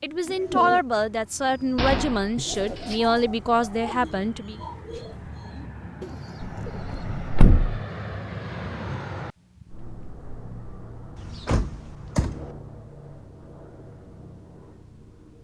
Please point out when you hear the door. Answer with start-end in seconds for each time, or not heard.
1.8-3.0, 6.5-7.8, 11.2-12.5.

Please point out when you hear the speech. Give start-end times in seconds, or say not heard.
0.0-4.5.